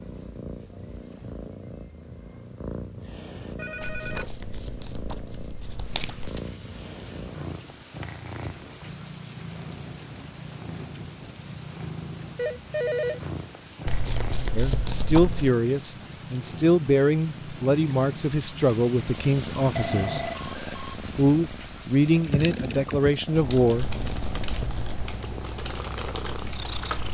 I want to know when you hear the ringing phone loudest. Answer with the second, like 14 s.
13 s.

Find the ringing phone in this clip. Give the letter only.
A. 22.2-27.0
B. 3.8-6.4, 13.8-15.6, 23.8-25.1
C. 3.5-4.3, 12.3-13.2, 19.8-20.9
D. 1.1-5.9
C.